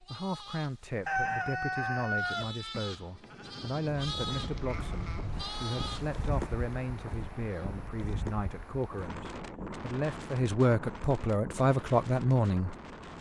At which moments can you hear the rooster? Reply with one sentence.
The rooster can be heard from 1.1 to 2.5 s.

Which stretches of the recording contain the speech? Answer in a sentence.
You can hear the speech from 0.0 to 12.8 s.